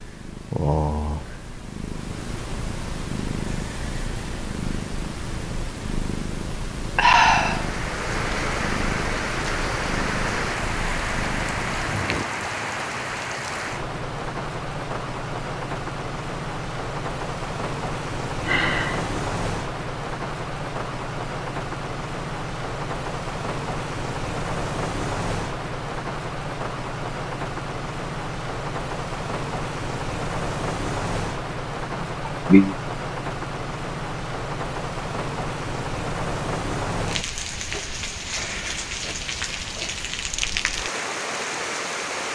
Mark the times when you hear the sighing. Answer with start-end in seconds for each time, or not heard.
7.0-7.7, 18.4-19.1, 32.0-32.8.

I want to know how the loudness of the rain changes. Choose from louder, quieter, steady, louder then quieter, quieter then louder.
steady.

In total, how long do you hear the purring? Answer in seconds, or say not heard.
12 s.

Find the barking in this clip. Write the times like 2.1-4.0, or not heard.
not heard.